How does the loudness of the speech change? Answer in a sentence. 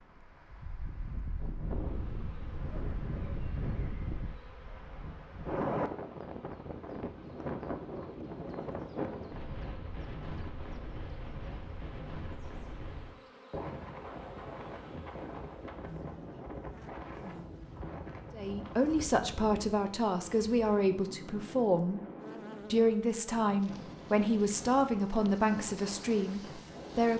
The volume of the speech stays about the same.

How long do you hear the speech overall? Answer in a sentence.
You can hear the speech for 8 seconds altogether.